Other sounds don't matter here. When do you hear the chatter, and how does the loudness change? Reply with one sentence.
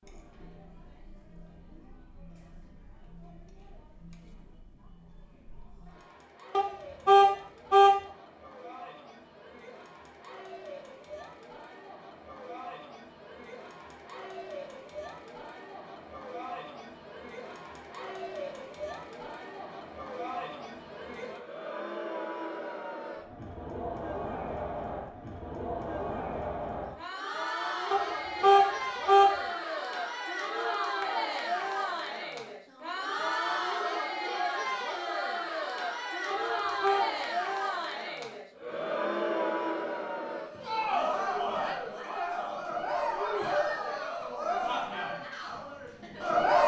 You can hear the chatter from 0.0 to 46.6 s, getting louder.